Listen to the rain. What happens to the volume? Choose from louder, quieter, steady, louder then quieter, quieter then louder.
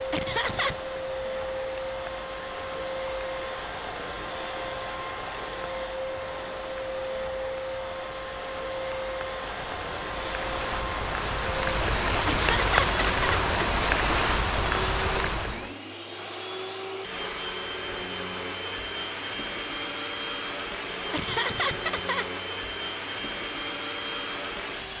louder.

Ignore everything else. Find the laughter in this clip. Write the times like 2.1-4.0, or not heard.
0.1-0.8, 12.2-13.4, 21.1-22.4.